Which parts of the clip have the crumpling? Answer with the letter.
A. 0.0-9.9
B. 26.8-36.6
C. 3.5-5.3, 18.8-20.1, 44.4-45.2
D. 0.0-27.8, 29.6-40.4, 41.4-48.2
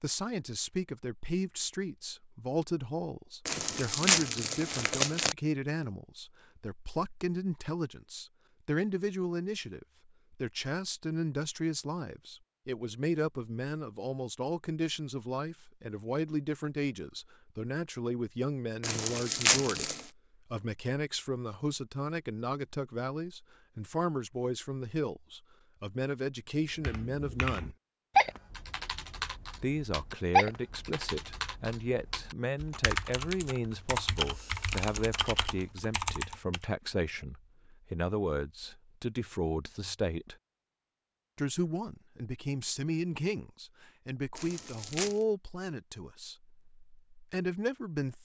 C.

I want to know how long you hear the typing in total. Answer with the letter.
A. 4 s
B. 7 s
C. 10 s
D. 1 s
C.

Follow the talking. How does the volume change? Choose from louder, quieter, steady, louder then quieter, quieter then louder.
steady.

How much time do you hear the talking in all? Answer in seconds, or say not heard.
45 s.